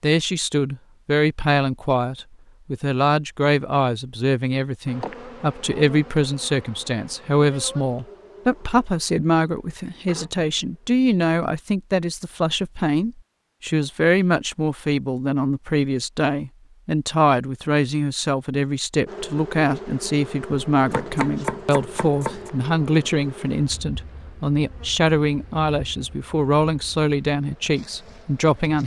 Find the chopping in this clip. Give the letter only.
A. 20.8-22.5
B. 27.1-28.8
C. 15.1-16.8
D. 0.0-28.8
A.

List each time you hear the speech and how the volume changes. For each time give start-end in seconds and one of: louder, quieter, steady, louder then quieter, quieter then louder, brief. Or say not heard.
0.0-28.8 steady.